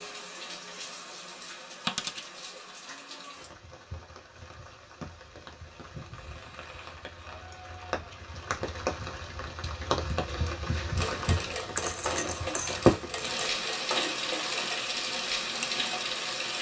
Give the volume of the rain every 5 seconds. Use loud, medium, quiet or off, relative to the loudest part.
quiet, medium, loud, loud.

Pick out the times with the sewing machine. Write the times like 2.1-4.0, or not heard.
10.2-16.5.